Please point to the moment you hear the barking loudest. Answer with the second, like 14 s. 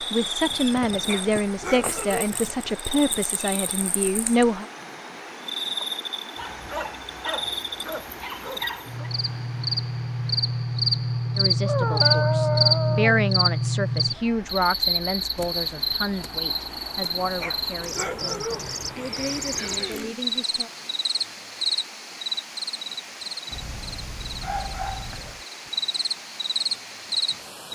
12 s.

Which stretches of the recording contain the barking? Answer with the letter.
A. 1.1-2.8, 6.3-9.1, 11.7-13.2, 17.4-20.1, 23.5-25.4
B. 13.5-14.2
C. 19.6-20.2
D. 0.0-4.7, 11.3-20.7
A.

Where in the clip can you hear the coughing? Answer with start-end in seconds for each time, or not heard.
19.6-20.2.